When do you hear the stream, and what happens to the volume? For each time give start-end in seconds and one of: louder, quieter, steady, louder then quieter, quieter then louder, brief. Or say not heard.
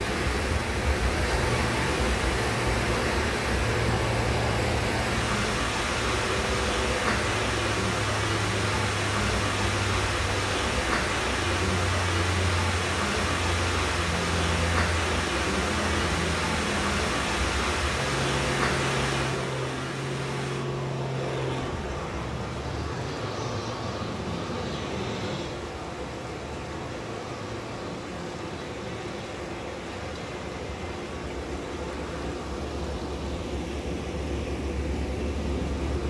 0.0-36.0 quieter.